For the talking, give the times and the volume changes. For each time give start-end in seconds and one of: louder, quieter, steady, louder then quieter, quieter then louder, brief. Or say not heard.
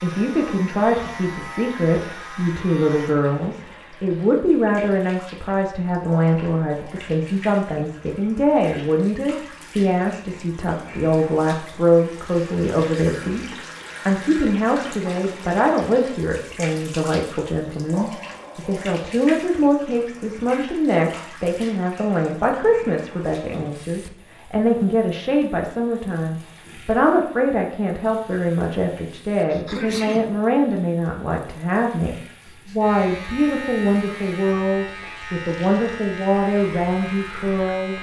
0.0-37.9 steady.